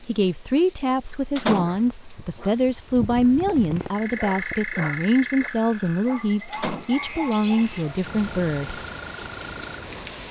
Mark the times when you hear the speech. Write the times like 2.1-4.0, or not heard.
0.0-8.8.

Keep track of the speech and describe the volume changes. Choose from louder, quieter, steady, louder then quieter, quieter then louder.
steady.